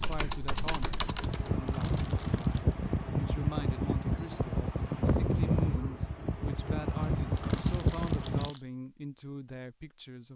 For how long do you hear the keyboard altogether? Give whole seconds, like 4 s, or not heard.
2 s.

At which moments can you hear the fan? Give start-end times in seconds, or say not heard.
0.2-8.5.